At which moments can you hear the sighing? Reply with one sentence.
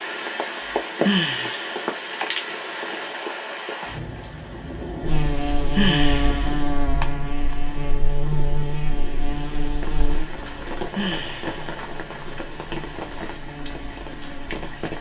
You can hear the sighing from 1.0 to 1.8 s, from 5.8 to 7.5 s and from 10.9 to 11.6 s.